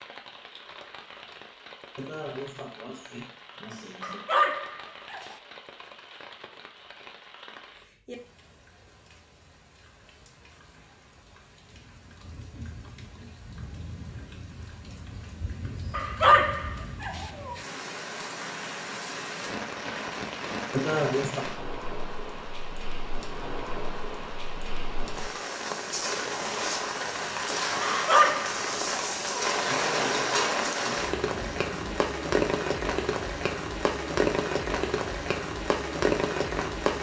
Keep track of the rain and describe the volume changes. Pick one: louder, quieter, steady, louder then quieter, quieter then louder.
louder.